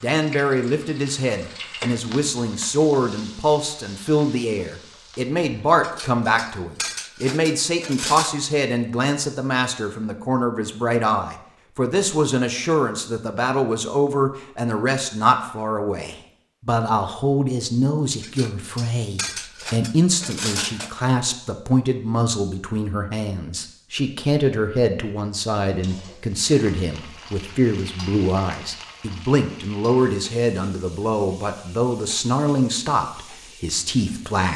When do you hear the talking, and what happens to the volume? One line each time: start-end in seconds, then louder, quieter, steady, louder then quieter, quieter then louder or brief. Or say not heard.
0.0-34.5 steady.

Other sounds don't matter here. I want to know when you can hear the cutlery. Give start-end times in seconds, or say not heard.
5.8-8.3, 18.2-20.9.